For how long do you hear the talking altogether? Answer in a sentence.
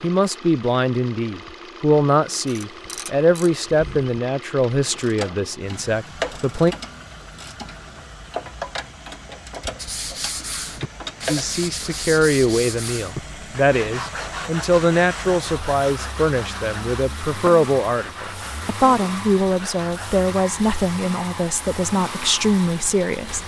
The talking can be heard for 19 seconds in total.